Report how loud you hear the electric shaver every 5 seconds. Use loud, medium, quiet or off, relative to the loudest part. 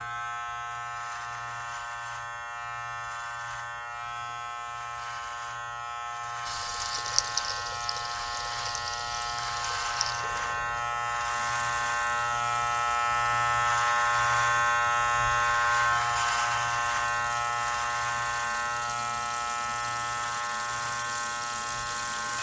medium, medium, loud, loud, medium.